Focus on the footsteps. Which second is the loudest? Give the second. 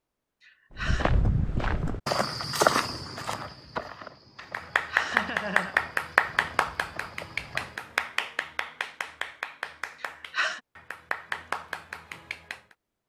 3 s.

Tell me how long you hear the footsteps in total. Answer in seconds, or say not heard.
7 s.